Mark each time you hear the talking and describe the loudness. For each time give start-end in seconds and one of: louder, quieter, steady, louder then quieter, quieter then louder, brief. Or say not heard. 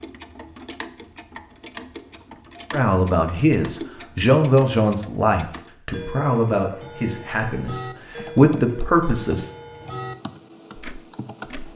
2.7-9.5 quieter then louder.